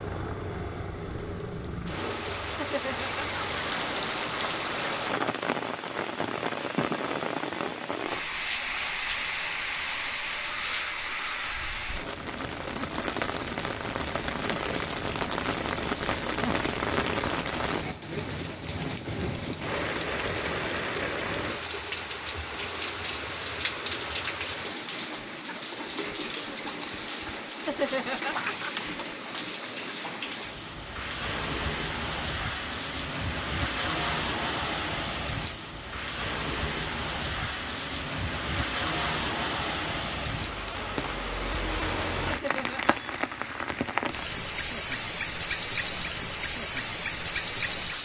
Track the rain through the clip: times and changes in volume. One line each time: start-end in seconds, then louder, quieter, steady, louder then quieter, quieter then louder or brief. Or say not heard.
0.0-48.0 steady.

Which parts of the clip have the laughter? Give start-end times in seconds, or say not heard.
2.5-3.5, 27.6-28.7, 42.2-43.0.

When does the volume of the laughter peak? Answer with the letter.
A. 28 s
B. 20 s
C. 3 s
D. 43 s
A.